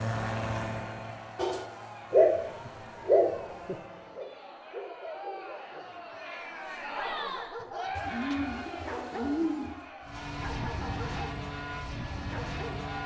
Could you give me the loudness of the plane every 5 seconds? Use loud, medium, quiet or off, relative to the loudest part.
loud, off, loud.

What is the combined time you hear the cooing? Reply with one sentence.
You can hear the cooing for 2 seconds altogether.